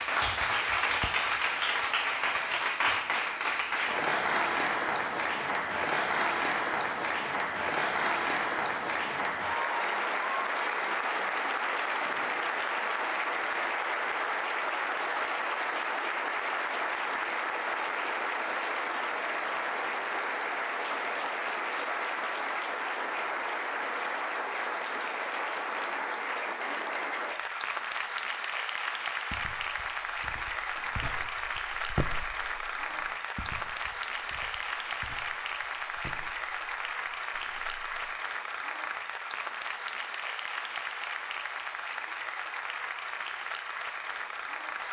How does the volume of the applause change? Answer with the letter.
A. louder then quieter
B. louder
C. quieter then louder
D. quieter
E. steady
D.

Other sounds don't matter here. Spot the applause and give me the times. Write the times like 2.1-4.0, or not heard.
0.0-44.8.